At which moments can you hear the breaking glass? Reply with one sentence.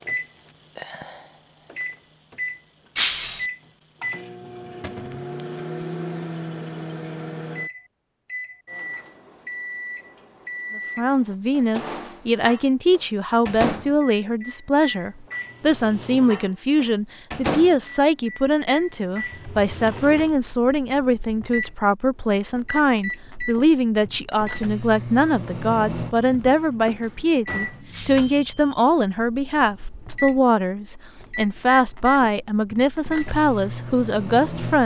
The breaking glass can be heard from 3.0 to 3.5 s and from 27.9 to 28.4 s.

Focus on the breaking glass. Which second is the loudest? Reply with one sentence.
The volume of the breaking glass peaks at 3 seconds.